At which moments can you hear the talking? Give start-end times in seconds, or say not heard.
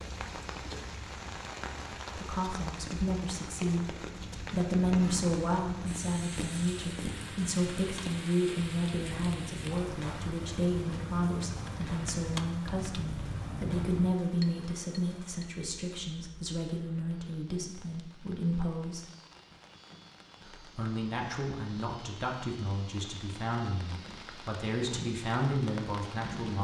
2.1-19.1, 20.4-26.5.